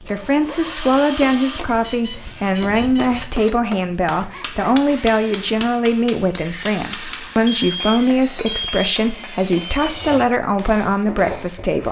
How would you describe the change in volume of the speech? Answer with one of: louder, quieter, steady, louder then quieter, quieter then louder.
steady.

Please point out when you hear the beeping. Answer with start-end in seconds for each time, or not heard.
1.8-3.3, 7.5-8.9.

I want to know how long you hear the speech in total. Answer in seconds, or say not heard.
12 s.